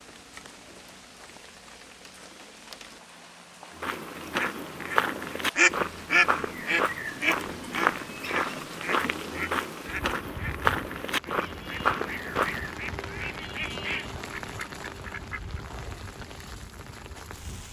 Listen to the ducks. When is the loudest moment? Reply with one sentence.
The volume of the ducks peaks at 6 seconds.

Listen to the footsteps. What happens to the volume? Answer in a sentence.
The loudness of the footsteps stays about the same.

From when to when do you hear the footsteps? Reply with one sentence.
The footsteps can be heard from 3.8 to 12.7 s.